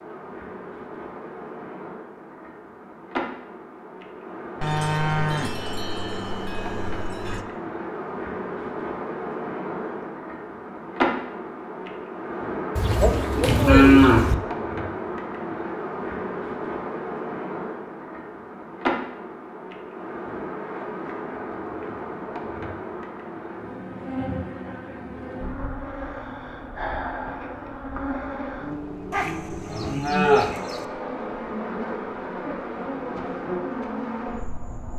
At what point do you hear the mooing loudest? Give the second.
14 s.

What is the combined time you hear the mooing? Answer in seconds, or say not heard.
6 s.